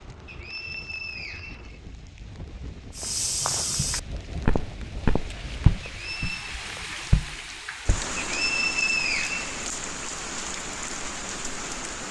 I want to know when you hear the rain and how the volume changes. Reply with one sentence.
You can hear the rain from 0.0 to 12.0 s, getting louder.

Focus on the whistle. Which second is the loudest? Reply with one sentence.
The loudest moment of the whistle is at 9 seconds.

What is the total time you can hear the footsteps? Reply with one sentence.
You can hear the footsteps for 5 seconds altogether.